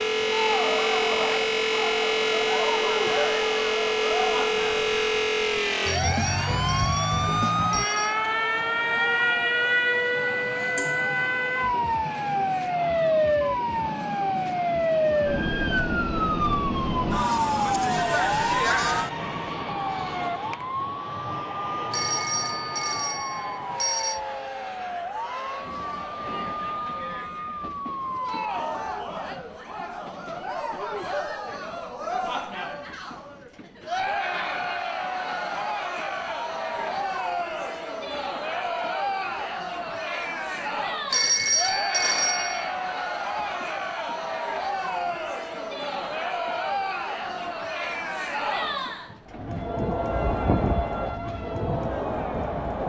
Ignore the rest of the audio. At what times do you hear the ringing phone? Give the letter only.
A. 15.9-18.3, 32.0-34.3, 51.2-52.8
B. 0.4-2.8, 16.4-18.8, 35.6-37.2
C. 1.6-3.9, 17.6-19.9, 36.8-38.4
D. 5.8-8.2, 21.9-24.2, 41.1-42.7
D.